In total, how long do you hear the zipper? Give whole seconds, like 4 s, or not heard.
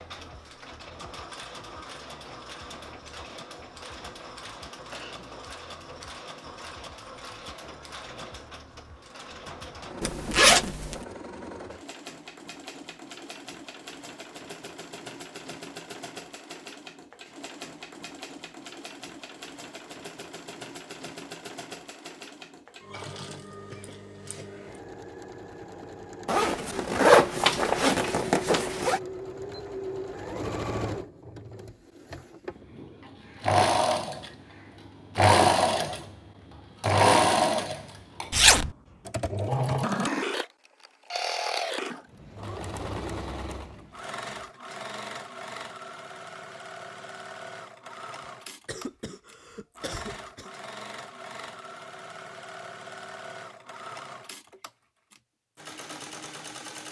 4 s.